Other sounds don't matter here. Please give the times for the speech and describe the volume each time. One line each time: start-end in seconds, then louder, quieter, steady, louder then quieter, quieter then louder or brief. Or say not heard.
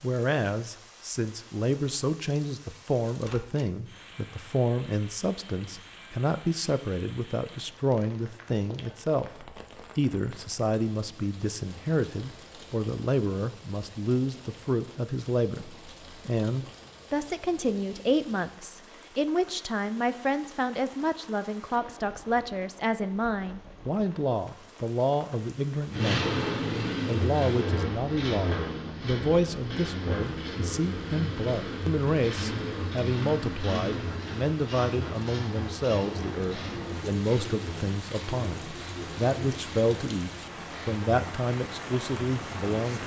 0.0-26.4 steady
27.1-43.0 steady.